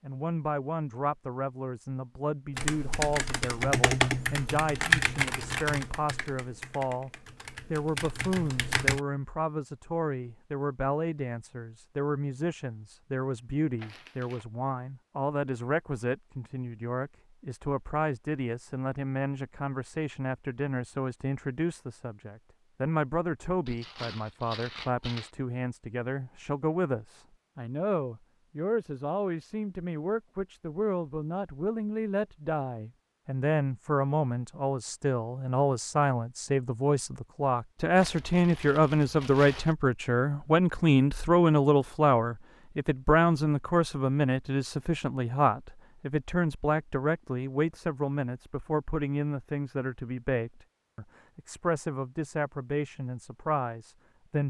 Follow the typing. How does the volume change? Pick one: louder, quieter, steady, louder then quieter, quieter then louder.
quieter then louder.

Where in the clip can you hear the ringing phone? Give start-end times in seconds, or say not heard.
not heard.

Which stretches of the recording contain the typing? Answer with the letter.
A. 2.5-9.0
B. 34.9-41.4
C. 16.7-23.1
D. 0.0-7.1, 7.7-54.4
A.